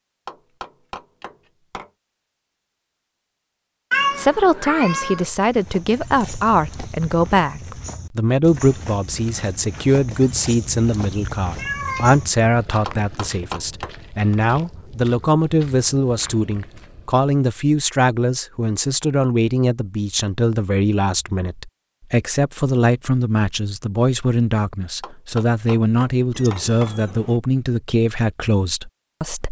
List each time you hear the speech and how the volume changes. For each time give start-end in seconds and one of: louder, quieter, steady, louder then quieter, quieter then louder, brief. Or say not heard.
4.2-29.4 steady.